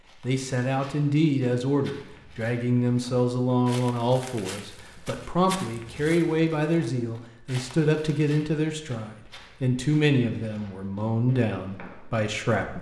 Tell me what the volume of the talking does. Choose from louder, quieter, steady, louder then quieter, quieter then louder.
steady.